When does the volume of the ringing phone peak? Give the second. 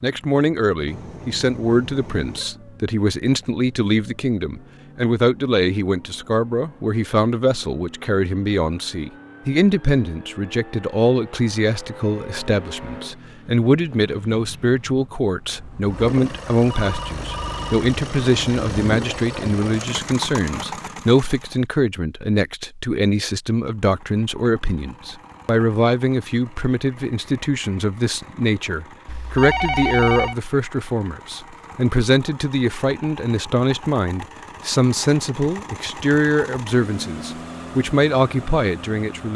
30 s.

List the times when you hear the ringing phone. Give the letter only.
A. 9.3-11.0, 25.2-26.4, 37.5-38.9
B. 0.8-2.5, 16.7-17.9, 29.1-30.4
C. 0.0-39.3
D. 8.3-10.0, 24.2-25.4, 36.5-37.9
B.